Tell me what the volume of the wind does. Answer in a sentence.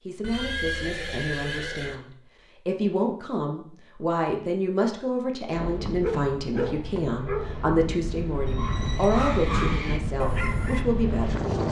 The volume of the wind goes up.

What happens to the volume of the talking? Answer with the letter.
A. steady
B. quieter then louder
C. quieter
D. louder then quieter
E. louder
E.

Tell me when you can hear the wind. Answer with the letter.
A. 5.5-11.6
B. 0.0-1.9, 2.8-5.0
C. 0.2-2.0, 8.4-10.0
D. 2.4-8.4
A.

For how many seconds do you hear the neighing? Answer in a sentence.
You can hear the neighing for 3 seconds altogether.